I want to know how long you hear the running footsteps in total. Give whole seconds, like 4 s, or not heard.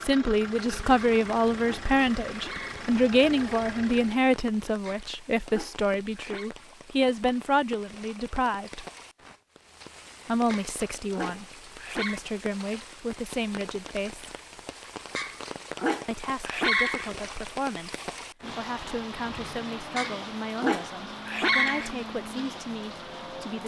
not heard.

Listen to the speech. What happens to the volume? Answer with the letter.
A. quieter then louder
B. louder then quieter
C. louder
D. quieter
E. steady
D.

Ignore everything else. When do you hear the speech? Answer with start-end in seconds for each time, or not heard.
0.1-8.8, 10.2-14.3, 16.1-23.6.